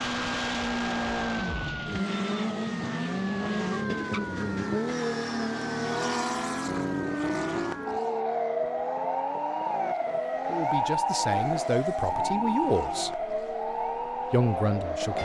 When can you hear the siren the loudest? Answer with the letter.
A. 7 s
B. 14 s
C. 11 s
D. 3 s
C.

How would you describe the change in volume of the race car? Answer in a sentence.
The volume of the race car goes down.